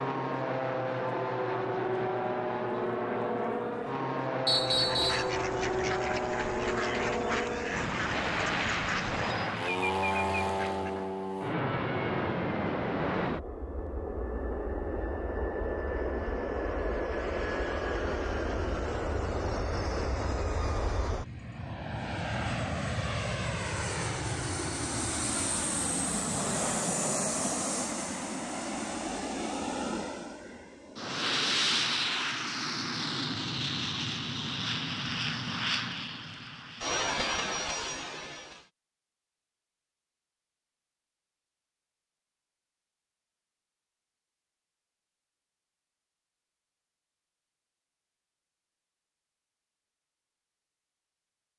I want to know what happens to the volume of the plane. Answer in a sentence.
The loudness of the plane stays about the same.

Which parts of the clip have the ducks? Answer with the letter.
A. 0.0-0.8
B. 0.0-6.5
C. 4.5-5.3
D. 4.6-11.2
D.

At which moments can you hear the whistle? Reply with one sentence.
You can hear the whistle from 4.5 to 5.3 s.